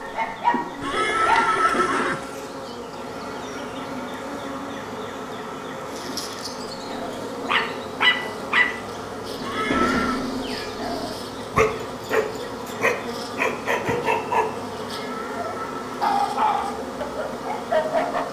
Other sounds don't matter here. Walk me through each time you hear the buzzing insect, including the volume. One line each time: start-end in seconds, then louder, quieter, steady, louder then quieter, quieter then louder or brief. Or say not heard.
0.0-18.2 steady.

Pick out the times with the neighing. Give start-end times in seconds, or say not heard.
0.8-2.2, 9.4-10.3, 14.9-16.1.